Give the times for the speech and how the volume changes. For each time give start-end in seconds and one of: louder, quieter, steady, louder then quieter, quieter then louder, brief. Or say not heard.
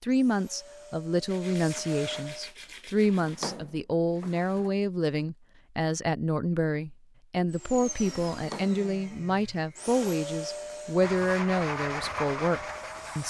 0.0-13.2 steady.